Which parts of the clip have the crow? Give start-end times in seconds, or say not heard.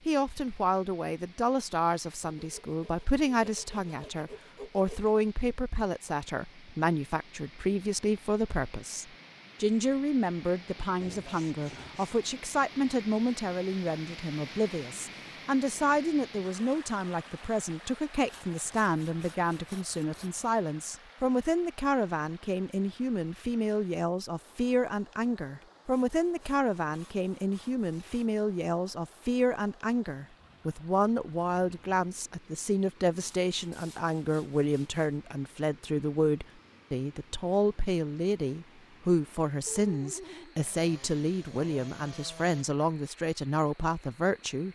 not heard.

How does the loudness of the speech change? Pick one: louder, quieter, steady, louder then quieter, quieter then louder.
steady.